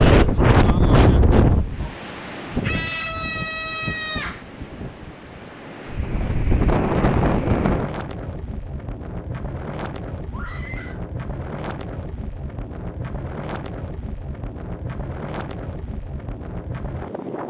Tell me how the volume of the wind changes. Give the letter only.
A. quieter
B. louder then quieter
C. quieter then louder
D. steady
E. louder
A.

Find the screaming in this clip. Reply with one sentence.
You can hear the screaming from 2.6 to 4.5 s and from 10.3 to 11.0 s.